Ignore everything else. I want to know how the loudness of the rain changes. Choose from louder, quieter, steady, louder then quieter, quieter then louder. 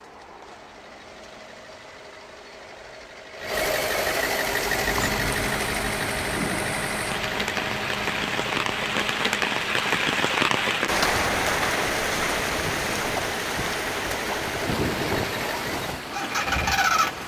louder then quieter.